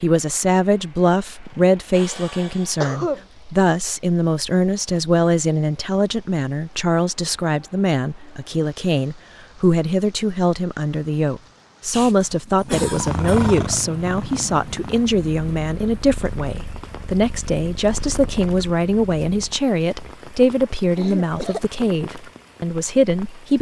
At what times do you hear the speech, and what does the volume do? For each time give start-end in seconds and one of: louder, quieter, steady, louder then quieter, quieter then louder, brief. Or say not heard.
0.0-23.5 steady.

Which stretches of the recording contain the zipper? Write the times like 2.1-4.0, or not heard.
not heard.